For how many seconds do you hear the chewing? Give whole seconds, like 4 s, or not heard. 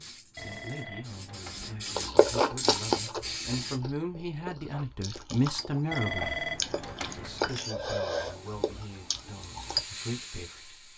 8 s.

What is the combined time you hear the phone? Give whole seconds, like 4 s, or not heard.
3 s.